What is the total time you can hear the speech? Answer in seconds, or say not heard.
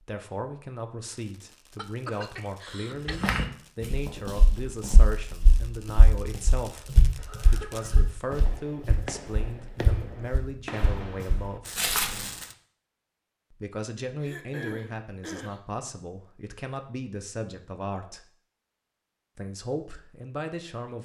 18 s.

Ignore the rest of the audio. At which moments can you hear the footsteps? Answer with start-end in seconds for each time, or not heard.
3.0-12.3.